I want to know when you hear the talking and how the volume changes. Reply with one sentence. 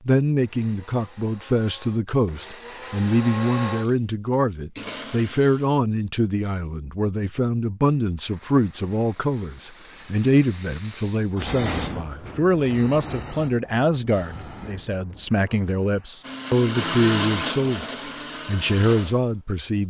You can hear the talking from 0.1 to 17.9 s, at a steady volume; and briefly from 18.4 to 19.8 s.